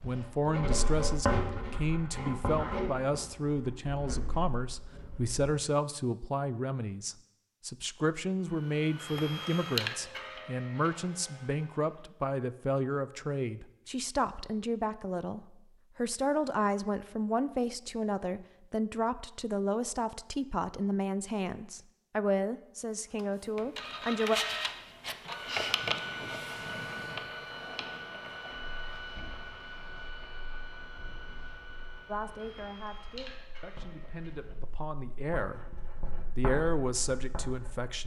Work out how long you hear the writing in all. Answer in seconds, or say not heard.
15 s.